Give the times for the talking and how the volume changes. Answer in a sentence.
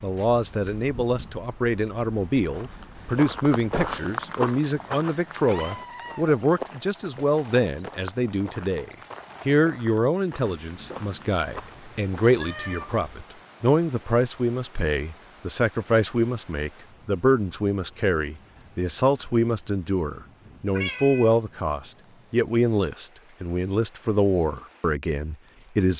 You can hear the talking from 0.0 to 25.9 s, at a steady volume.